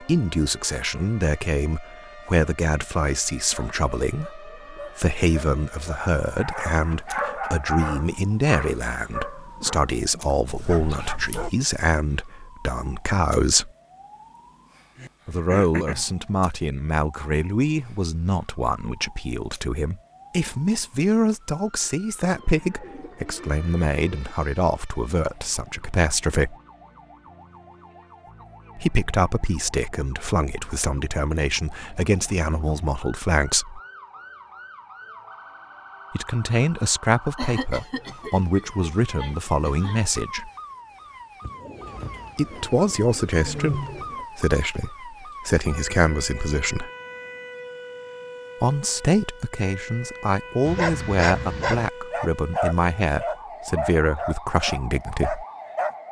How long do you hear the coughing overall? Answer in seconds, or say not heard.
4 s.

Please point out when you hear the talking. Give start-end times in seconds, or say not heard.
0.0-13.7, 15.2-26.6, 28.8-33.8, 36.1-40.5, 42.4-46.9, 48.6-55.5.